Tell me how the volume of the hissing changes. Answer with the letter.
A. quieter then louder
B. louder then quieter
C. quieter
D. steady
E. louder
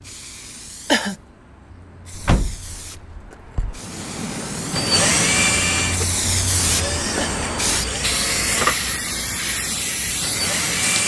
E.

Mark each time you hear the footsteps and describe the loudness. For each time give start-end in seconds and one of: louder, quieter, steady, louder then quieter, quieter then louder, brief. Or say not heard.
not heard.